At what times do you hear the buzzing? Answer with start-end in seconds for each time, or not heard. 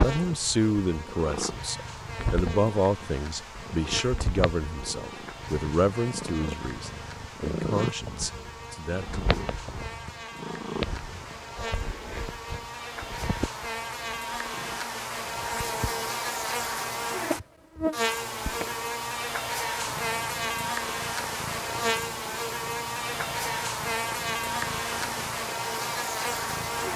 0.0-26.9.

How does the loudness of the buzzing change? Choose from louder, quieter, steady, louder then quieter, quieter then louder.
louder.